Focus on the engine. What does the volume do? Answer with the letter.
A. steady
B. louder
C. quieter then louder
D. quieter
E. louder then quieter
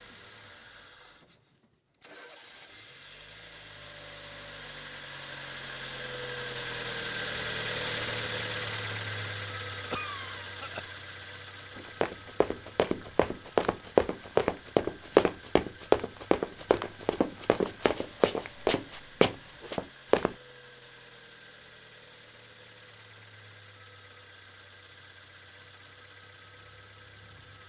E.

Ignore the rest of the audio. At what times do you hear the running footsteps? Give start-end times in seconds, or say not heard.
11.8-20.4.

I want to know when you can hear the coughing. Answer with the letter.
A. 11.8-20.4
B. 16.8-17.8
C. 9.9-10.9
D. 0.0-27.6
C.